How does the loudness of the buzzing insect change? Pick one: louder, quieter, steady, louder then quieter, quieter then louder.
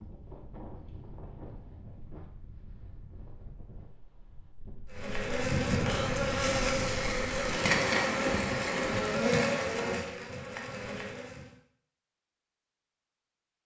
quieter.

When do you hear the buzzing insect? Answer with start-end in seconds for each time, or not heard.
4.9-11.5.